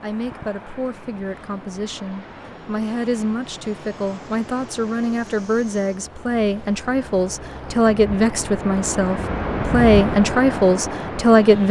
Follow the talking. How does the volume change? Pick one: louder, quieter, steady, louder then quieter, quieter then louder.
louder.